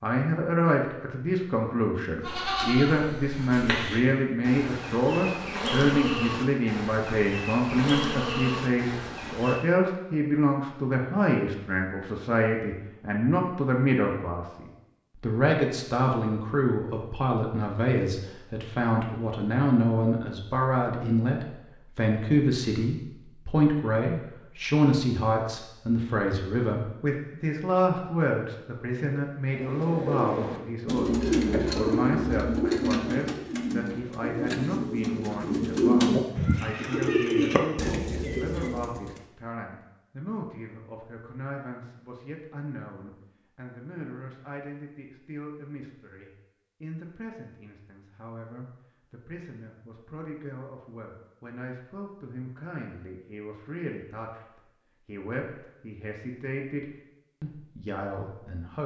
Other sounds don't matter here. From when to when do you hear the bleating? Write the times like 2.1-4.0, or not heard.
2.2-9.7.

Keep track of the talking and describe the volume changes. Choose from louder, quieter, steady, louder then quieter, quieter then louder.
quieter.